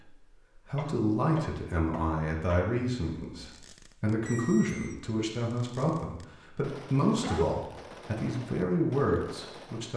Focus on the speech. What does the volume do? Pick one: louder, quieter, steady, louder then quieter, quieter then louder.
steady.